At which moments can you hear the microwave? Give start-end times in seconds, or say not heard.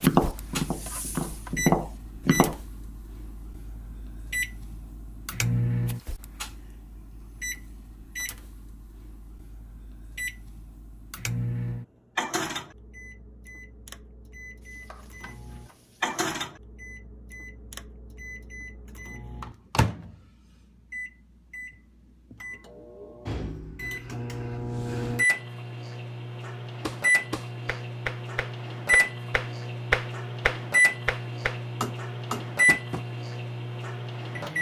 0.0-34.5.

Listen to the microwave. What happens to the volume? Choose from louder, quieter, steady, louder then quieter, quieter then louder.
louder.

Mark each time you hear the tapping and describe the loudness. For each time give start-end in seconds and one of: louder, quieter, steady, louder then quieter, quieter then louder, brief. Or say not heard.
0.0-2.6 brief
26.8-33.0 louder then quieter.